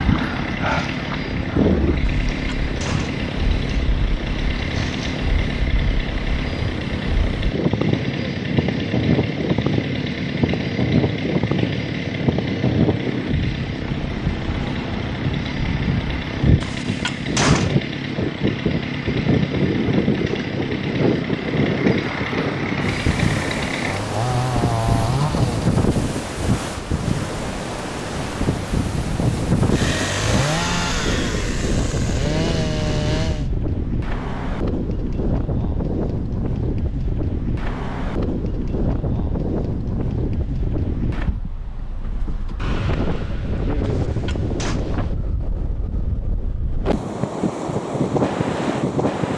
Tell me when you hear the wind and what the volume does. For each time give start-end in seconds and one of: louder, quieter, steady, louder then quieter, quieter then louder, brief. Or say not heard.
0.0-49.3 steady.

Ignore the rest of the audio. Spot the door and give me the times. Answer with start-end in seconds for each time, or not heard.
2.0-3.1, 16.6-17.8, 43.8-44.8.